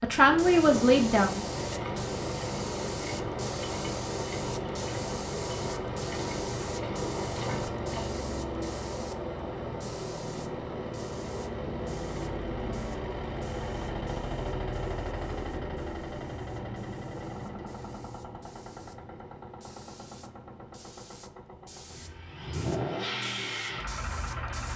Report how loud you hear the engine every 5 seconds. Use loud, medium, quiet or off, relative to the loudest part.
loud, loud, loud, medium, loud.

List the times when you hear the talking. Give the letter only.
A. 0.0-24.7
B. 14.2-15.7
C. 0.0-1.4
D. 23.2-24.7
C.